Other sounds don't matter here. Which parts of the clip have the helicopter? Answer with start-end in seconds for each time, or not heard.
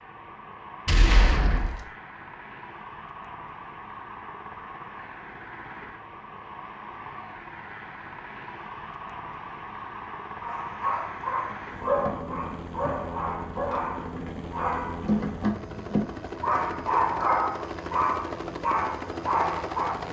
0.0-20.0.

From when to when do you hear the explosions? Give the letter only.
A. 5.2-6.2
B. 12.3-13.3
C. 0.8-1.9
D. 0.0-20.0
C.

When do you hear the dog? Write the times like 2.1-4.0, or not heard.
10.4-20.0.